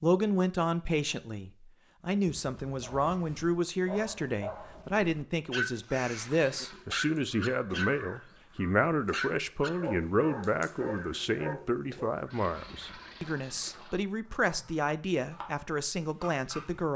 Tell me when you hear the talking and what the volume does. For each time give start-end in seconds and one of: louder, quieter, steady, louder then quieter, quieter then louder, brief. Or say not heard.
0.0-16.9 steady.